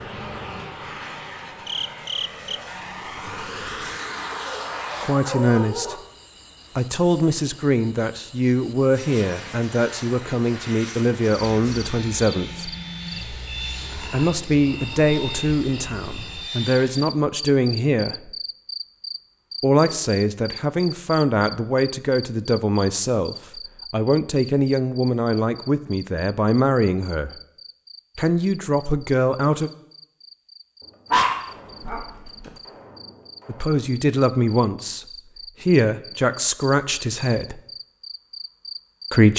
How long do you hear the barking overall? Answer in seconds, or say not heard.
3 s.